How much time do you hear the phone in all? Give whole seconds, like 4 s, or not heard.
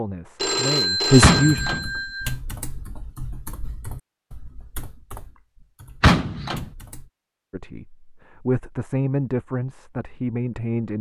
2 s.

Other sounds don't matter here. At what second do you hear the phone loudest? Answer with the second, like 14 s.
1 s.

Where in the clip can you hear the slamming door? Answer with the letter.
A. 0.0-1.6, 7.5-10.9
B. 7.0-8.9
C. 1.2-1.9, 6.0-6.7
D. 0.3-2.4
C.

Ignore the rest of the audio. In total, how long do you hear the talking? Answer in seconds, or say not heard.
5 s.